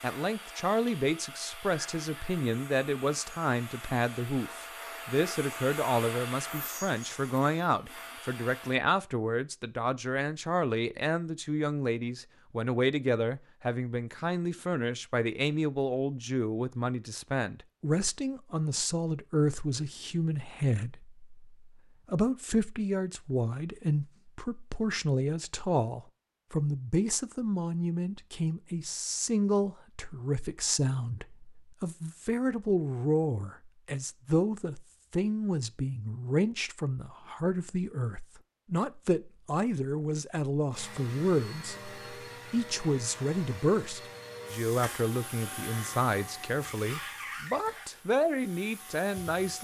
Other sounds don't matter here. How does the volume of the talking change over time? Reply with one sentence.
The volume of the talking stays about the same.